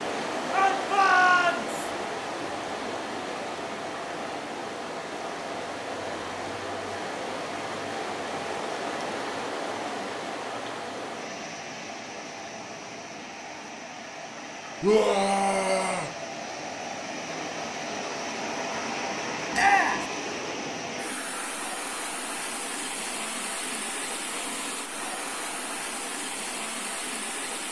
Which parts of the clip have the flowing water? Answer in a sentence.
You can hear the flowing water from 0.0 to 27.6 s.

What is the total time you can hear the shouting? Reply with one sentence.
The shouting can be heard for 3 seconds in total.